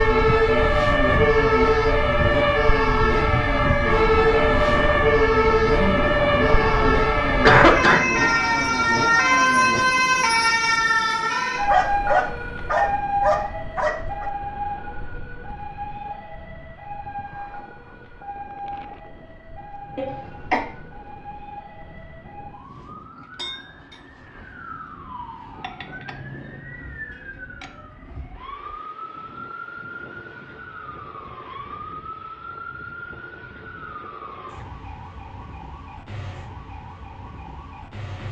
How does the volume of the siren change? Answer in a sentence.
The loudness of the siren goes down.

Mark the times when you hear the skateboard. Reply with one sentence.
The skateboard can't be heard in this clip.